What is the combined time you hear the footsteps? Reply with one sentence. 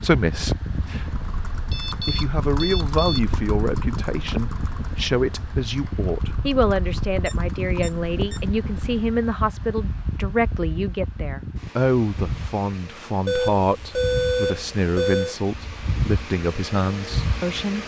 The footsteps can't be heard in this clip.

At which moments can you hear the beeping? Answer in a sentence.
You can hear the beeping from 1.7 to 3.2 s, from 7.2 to 8.4 s and from 13.2 to 15.3 s.